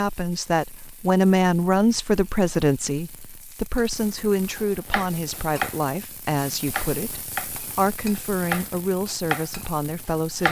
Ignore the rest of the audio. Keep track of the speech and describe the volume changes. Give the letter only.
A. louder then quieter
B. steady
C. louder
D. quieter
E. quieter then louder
D.